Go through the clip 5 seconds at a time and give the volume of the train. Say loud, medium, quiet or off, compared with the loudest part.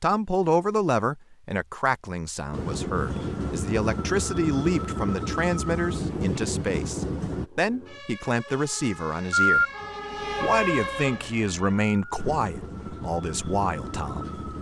loud, loud, medium.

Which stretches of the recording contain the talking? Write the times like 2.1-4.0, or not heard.
0.0-9.7, 10.4-14.5.